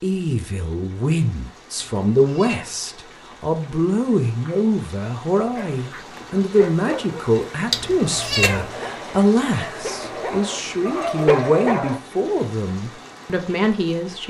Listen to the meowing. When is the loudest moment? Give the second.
8 s.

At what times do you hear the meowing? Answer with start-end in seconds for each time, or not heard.
1.8-2.8, 7.7-8.7.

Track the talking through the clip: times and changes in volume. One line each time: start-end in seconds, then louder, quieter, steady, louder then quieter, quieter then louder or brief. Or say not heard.
0.0-14.2 steady.